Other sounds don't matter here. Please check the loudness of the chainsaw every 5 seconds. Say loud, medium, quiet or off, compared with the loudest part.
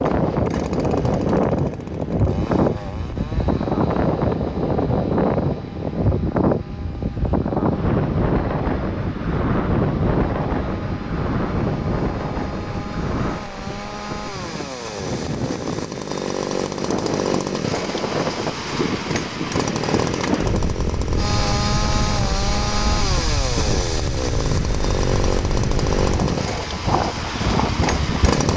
medium, quiet, medium, loud, loud, loud.